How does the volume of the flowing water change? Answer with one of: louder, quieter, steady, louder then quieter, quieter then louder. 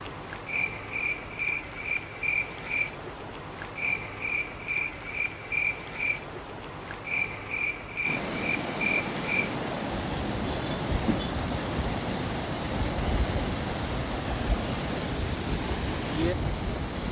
steady.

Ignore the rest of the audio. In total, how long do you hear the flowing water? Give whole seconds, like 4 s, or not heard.
9 s.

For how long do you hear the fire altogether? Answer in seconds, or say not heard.
not heard.